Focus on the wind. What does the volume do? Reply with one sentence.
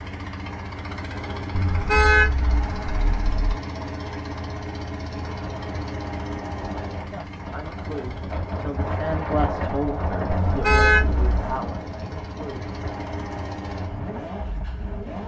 The loudness of the wind goes up, then down.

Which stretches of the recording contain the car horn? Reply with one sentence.
You can hear the car horn from 1.5 to 3.5 s and from 10.2 to 11.6 s.